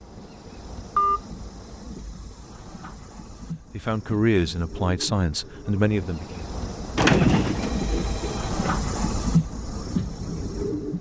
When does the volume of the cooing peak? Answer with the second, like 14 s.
7 s.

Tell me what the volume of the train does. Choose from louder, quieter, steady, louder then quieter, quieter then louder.
louder.